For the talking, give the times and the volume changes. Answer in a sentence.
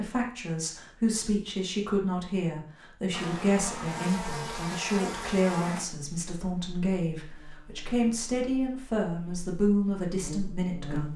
The talking can be heard from 0.0 to 11.1 s, at a steady volume.